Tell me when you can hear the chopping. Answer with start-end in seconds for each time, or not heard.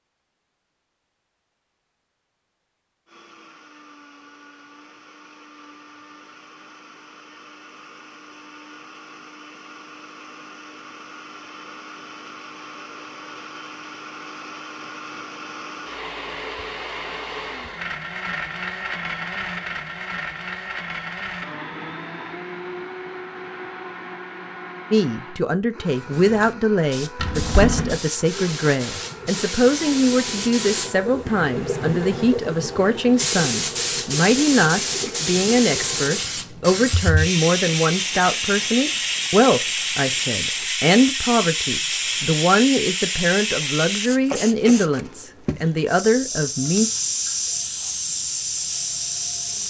not heard.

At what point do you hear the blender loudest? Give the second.
19 s.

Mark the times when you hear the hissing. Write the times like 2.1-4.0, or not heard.
25.9-49.6.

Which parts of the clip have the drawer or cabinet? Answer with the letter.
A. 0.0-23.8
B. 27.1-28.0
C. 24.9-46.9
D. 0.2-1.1
B.